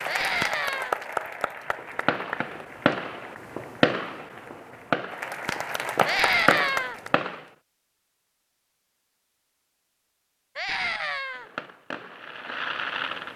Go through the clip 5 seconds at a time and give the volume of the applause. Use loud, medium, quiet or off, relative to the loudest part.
loud, loud, off.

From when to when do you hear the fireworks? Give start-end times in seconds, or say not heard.
1.8-7.5, 11.3-13.3.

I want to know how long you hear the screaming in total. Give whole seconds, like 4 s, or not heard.
3 s.